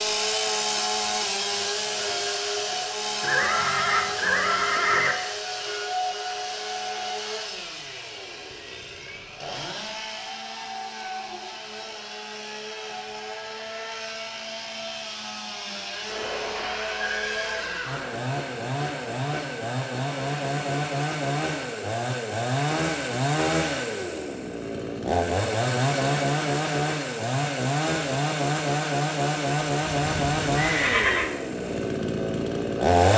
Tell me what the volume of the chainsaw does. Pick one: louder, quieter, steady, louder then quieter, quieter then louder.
quieter then louder.